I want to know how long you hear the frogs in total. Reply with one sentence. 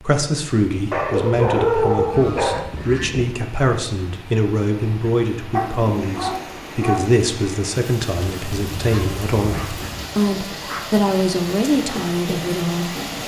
The frogs can't be heard in this clip.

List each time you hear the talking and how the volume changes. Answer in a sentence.
You can hear the talking from 0.0 to 13.1 s, at a steady volume.